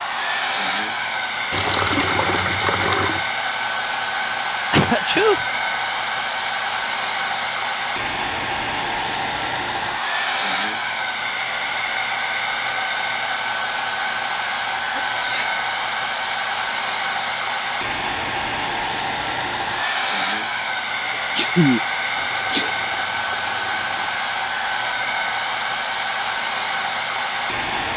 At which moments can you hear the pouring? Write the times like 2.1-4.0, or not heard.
1.5-3.3, 22.1-24.2.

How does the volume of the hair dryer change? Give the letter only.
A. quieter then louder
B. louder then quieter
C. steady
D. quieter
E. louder
C.